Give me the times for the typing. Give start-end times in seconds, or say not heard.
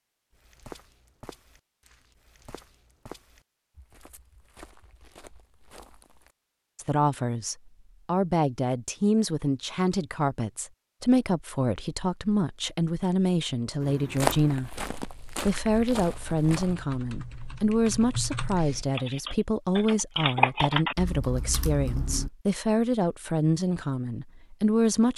13.8-22.3.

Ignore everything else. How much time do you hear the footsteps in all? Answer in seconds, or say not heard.
9 s.